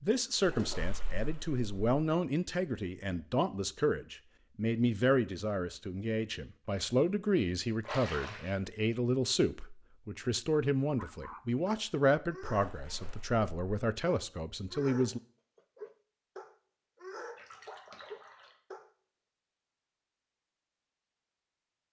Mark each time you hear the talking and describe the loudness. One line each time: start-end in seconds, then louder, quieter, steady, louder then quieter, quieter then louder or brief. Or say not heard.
0.0-15.2 steady.